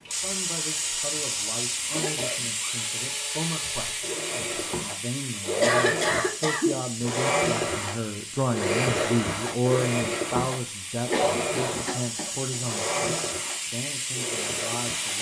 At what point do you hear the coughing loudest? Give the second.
6 s.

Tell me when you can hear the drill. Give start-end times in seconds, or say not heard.
0.0-15.1.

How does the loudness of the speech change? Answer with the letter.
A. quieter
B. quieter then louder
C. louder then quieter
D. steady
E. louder
C.